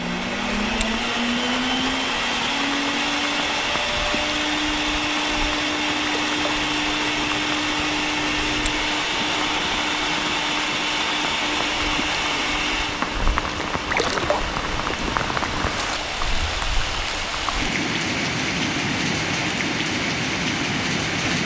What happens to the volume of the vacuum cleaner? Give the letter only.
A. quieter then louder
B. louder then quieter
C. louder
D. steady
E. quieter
E.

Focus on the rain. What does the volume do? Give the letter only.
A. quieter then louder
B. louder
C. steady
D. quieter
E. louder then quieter
B.